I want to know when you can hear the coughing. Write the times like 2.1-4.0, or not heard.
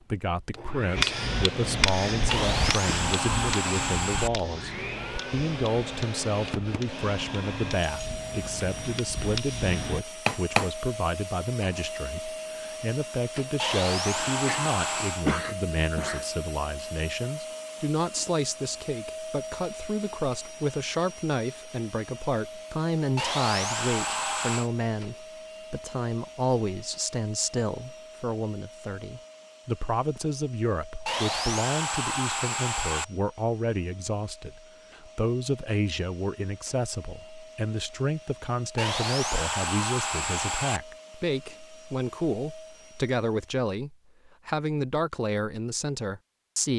14.2-16.2.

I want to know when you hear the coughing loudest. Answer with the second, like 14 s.
15 s.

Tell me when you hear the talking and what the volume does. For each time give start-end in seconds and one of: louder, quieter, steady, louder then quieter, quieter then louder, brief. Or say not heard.
0.1-46.7 steady.